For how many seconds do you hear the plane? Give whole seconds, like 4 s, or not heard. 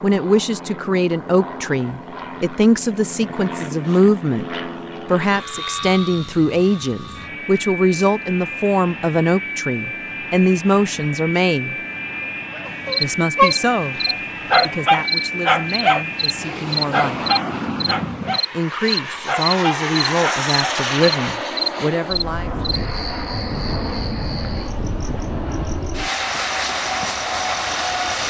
28 s.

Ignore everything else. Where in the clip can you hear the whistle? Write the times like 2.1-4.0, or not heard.
not heard.